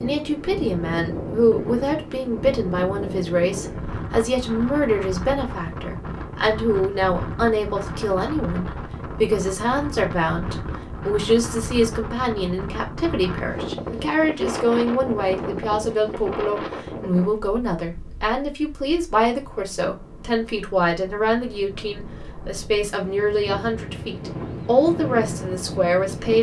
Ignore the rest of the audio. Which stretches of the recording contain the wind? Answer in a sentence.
The wind can be heard from 0.0 to 26.3 s.